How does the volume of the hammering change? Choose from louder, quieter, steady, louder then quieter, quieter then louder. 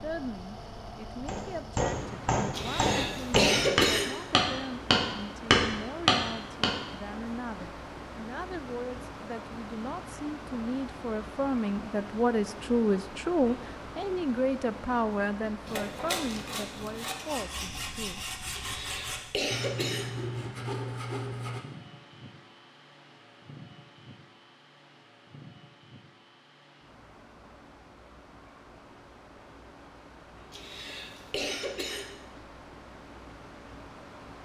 louder.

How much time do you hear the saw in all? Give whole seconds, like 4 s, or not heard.
6 s.